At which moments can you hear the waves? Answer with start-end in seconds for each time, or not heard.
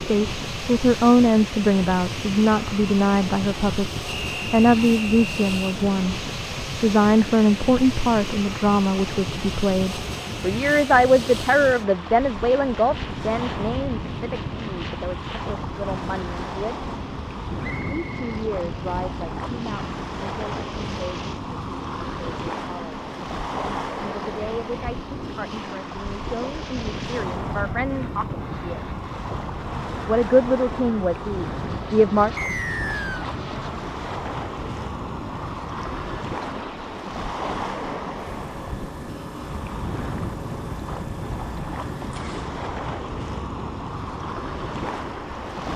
0.0-45.7.